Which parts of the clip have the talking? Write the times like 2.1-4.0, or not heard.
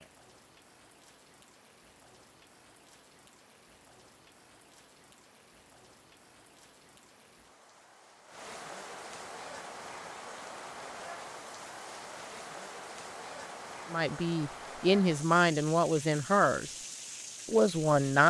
13.9-16.7, 17.4-18.2.